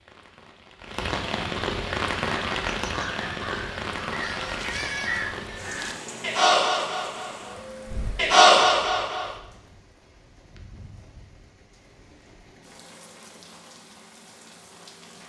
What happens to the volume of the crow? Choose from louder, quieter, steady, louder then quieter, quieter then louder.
louder.